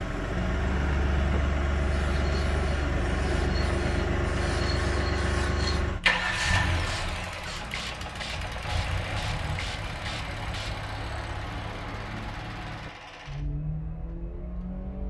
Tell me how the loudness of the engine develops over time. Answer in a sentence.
The loudness of the engine goes down.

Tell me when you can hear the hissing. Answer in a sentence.
The hissing can be heard from 1.9 to 10.9 s.